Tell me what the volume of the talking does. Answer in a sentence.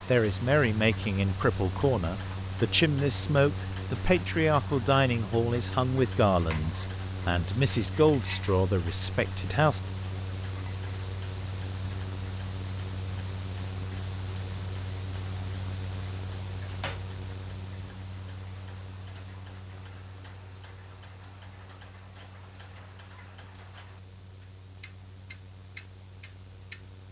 The loudness of the talking stays about the same.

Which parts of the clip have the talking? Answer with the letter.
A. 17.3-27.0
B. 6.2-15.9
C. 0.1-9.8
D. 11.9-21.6
C.